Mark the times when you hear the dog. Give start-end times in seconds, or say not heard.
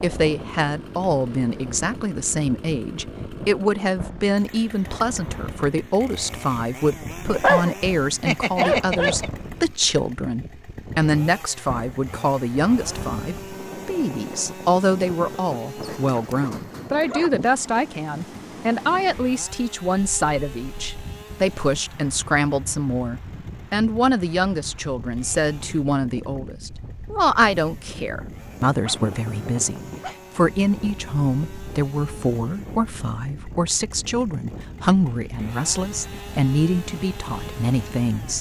7.2-9.3, 15.8-17.9, 28.7-30.2.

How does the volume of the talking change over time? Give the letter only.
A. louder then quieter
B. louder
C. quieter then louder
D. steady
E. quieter
D.